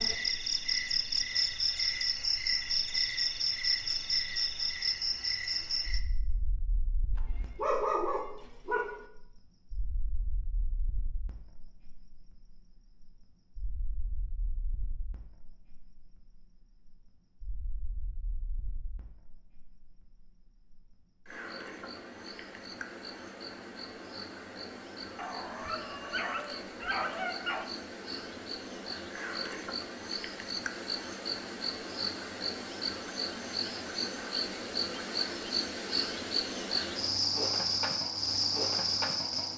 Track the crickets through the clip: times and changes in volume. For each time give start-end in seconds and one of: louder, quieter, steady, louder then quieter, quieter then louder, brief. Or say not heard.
0.0-39.5 quieter then louder.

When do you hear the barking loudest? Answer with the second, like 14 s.
8 s.